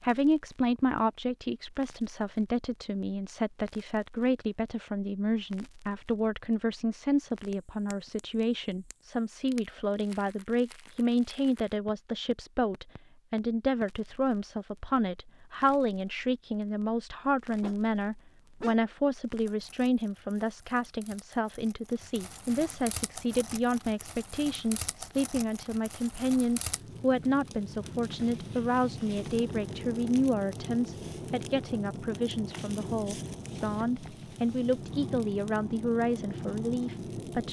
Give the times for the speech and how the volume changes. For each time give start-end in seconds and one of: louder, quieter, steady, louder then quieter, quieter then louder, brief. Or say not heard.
0.0-37.4 steady.